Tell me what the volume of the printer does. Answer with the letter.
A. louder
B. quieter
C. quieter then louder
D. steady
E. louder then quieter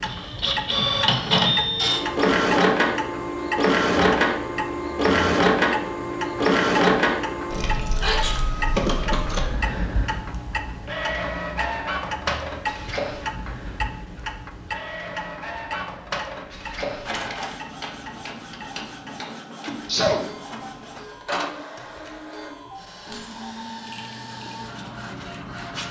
B.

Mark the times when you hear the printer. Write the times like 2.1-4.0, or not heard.
0.0-25.8.